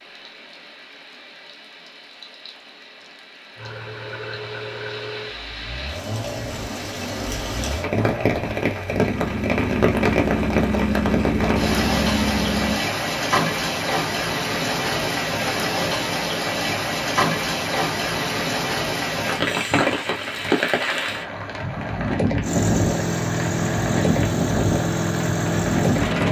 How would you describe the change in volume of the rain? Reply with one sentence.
The volume of the rain goes up.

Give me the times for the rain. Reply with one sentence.
You can hear the rain from 0.0 to 26.2 s.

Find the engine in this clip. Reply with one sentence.
You can hear the engine from 3.5 to 12.8 s and from 22.4 to 26.2 s.